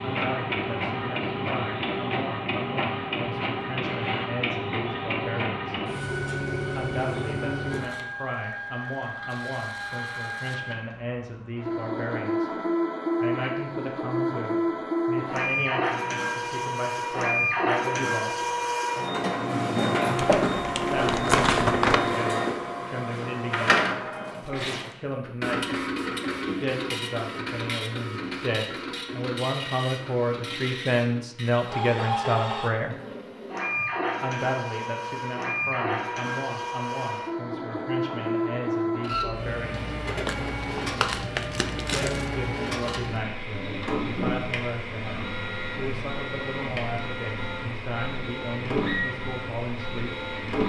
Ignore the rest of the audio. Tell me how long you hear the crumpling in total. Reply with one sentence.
You can hear the crumpling for 4 seconds altogether.